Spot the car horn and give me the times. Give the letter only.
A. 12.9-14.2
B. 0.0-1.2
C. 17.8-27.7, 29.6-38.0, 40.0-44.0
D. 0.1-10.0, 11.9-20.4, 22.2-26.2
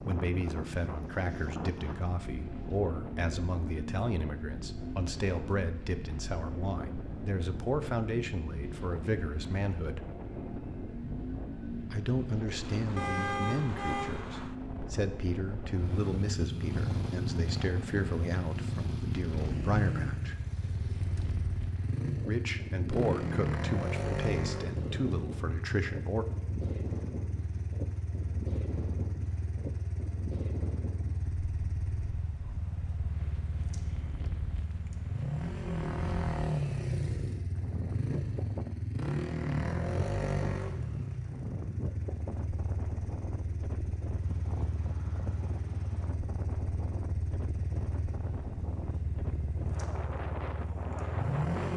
A.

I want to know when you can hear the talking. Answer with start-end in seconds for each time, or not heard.
0.1-10.0, 11.9-20.4, 22.2-26.2.